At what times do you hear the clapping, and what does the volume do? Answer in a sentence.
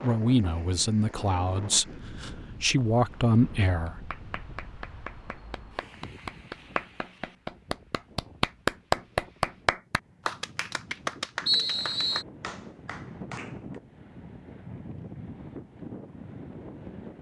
The clapping can be heard from 3.6 to 13.8 s, getting louder then quieter.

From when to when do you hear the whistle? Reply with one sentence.
The whistle can be heard from 11.4 to 12.2 s.